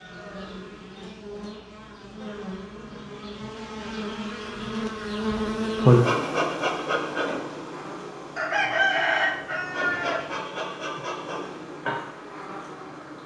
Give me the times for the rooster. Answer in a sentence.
The rooster can be heard from 8.3 to 10.2 s.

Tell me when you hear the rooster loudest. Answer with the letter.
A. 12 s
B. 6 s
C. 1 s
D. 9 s
D.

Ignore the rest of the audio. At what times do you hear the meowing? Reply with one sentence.
The meowing can't be heard in this clip.